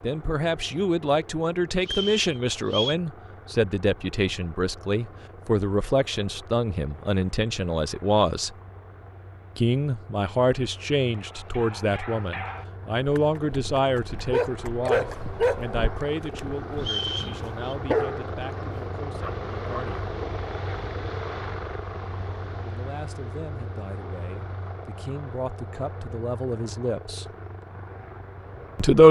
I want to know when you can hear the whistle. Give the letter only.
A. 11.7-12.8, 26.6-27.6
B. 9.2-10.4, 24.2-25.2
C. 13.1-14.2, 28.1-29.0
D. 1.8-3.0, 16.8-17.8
D.